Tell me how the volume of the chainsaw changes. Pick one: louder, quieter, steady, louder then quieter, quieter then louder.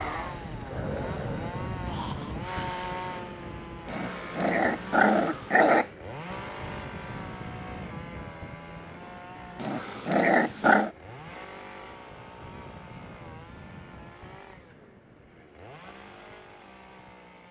quieter.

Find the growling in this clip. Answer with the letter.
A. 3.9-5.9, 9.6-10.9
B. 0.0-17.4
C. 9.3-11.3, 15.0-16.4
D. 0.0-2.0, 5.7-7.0
A.